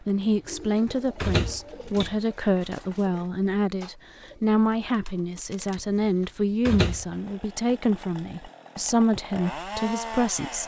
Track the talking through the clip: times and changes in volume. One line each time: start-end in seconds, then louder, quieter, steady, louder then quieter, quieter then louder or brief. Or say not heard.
0.0-10.6 steady.